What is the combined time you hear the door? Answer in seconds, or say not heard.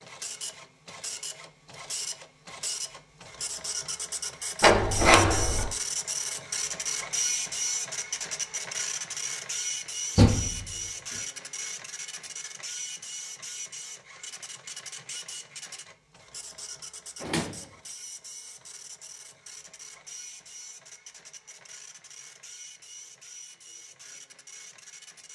2 s.